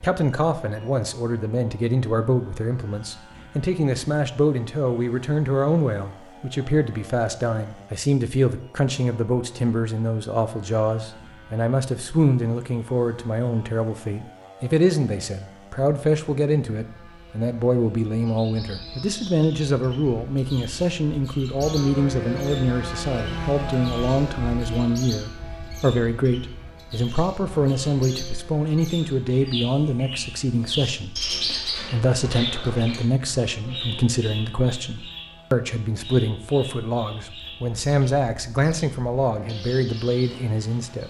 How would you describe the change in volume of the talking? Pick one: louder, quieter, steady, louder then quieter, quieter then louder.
steady.